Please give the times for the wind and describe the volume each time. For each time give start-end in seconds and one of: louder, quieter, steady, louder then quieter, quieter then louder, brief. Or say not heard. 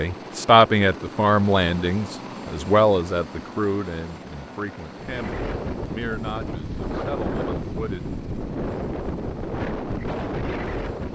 4.9-11.1 steady.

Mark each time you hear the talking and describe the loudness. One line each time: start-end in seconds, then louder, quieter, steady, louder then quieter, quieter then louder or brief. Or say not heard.
0.0-8.1 quieter.